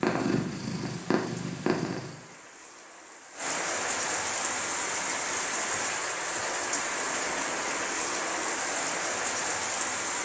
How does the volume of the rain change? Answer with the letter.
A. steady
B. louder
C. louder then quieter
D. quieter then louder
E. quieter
B.